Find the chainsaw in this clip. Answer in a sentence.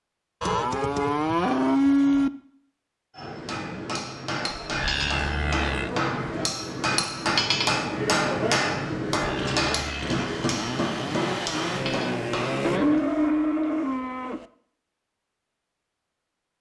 The chainsaw can be heard from 9.3 to 12.8 s.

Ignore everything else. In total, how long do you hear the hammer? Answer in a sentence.
The hammer can be heard for 10 seconds in total.